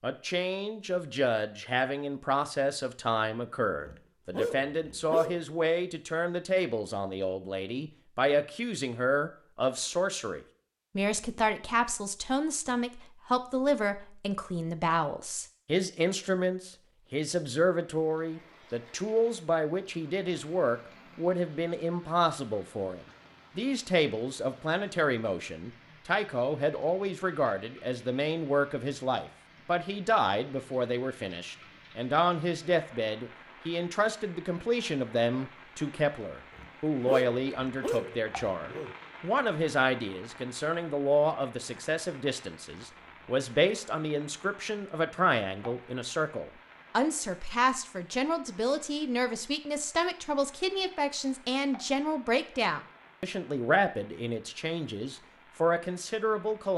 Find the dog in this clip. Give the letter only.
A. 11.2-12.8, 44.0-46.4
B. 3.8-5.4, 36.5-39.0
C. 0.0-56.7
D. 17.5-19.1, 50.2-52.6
B.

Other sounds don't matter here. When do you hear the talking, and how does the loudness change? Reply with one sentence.
You can hear the talking from 0.0 to 56.7 s, at a steady volume.